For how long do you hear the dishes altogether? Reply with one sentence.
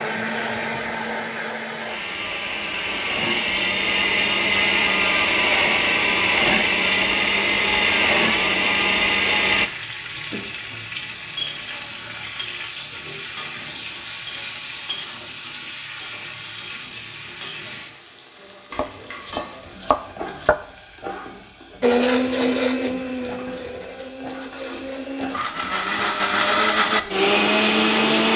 The dishes can't be heard in this clip.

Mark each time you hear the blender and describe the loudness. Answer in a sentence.
You can hear the blender from 0.0 to 9.7 s, getting louder; and from 21.8 to 28.3 s, getting quieter then louder.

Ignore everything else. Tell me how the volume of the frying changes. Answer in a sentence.
The volume of the frying goes down.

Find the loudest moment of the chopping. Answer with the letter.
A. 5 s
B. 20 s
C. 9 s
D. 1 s
B.